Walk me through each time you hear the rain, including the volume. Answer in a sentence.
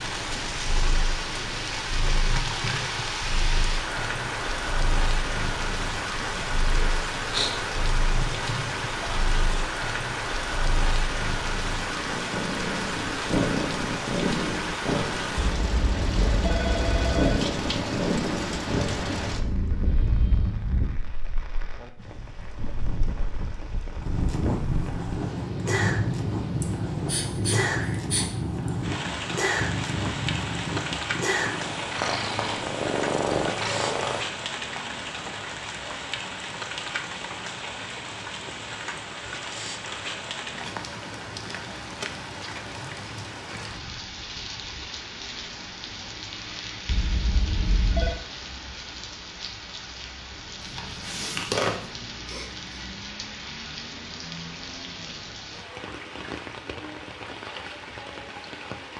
The rain can be heard from 0.0 to 58.9 s, getting quieter.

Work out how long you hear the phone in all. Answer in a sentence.
The phone can be heard for 4 seconds in total.